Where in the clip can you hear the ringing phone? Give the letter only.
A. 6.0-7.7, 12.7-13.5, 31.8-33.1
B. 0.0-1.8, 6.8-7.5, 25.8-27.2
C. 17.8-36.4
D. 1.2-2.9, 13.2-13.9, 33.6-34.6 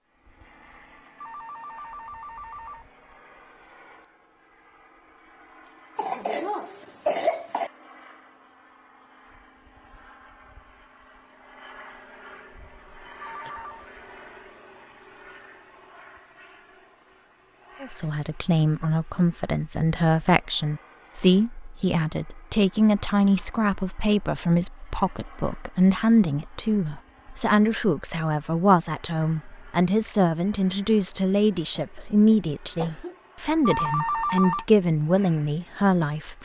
D.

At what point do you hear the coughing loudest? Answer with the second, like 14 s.
7 s.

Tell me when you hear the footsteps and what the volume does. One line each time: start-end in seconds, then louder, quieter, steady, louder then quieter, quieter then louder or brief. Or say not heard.
not heard.